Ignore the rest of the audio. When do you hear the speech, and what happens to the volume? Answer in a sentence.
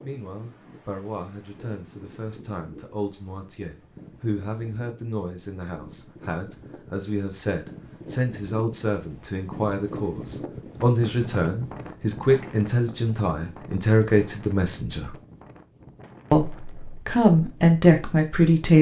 The speech can be heard from 0.0 to 15.2 s, getting louder; and briefly from 16.3 to 18.7 s.